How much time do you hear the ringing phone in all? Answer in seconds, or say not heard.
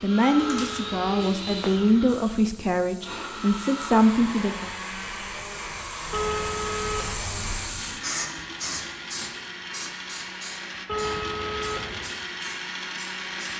4 s.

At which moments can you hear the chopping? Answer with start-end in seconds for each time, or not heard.
not heard.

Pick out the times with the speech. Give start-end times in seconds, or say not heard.
0.0-4.7.